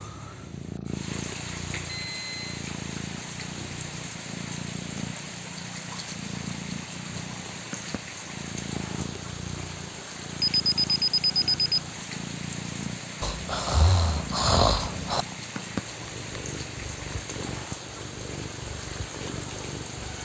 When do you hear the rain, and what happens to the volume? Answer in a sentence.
The rain can be heard from 0.0 to 20.2 s, at a steady volume.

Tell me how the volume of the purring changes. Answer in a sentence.
The loudness of the purring stays about the same.